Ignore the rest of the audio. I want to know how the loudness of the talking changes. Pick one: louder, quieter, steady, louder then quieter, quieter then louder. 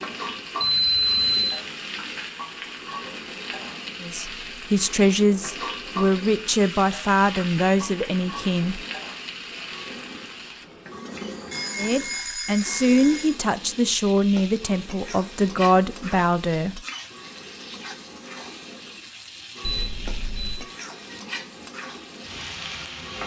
steady.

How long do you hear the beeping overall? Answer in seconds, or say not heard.
4 s.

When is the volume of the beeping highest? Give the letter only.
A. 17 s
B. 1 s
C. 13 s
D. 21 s
B.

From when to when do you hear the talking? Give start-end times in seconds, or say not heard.
4.0-8.8, 11.8-16.8.